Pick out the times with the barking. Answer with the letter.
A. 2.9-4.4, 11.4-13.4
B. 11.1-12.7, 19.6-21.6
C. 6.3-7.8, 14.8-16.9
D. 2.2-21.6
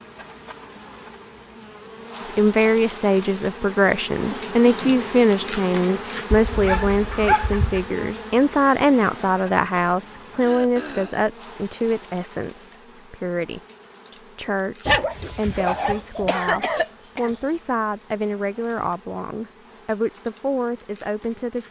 C.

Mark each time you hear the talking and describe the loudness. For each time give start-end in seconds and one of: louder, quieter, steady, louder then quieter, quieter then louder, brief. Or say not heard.
2.2-21.6 quieter.